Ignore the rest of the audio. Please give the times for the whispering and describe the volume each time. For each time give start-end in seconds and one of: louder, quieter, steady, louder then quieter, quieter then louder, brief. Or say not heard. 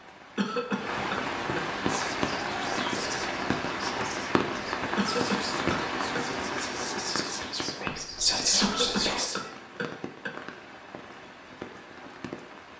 1.8-9.4 louder.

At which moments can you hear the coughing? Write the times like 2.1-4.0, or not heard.
0.3-1.6, 5.0-6.2, 8.6-10.3.